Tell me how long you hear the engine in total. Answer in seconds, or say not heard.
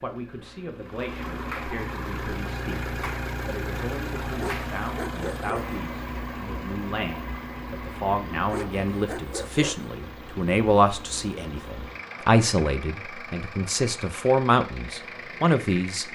16 s.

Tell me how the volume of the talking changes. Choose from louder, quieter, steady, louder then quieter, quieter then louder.
louder.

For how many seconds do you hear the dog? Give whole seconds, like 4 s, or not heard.
3 s.